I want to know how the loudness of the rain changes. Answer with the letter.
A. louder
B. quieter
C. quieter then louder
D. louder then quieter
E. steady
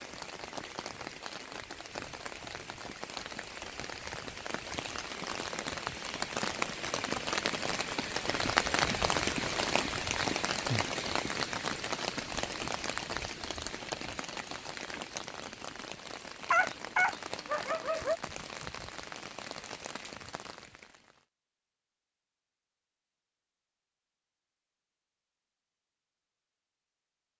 D.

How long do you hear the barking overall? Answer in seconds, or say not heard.
2 s.